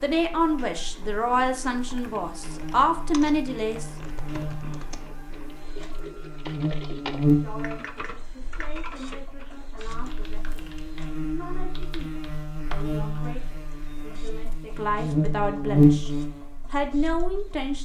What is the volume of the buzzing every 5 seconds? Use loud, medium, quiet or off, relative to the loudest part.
quiet, medium, quiet, loud.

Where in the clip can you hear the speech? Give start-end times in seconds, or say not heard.
0.0-3.9, 7.2-16.1, 16.7-17.7.